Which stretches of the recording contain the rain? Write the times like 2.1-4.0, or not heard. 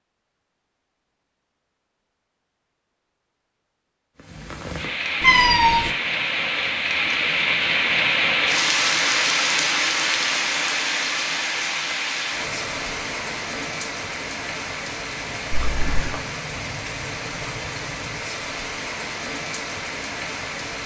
4.2-20.8.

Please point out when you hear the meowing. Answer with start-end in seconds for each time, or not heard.
5.2-5.9, 15.5-16.1.